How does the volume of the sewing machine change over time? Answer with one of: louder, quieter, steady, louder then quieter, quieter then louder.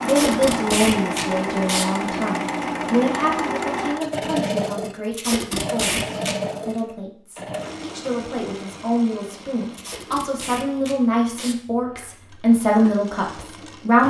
quieter.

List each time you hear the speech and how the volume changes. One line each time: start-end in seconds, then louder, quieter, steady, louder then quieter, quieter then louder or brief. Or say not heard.
0.0-14.0 quieter then louder.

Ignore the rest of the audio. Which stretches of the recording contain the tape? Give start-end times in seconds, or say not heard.
0.1-1.9, 5.1-6.8, 9.7-11.6.